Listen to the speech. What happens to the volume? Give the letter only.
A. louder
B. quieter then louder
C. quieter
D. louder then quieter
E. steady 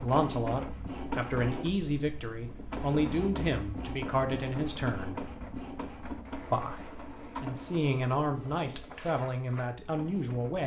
E.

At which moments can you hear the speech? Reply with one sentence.
The speech can be heard from 0.0 to 5.2 s and from 6.5 to 10.6 s.